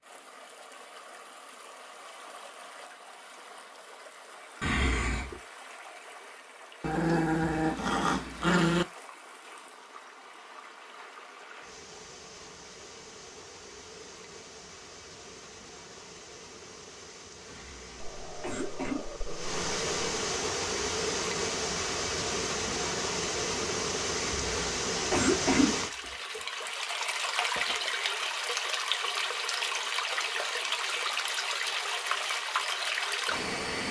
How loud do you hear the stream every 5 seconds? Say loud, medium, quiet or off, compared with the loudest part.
quiet, quiet, quiet, medium, loud, loud, loud.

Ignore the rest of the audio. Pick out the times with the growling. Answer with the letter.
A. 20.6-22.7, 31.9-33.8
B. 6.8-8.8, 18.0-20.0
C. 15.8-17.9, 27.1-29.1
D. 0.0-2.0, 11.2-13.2
B.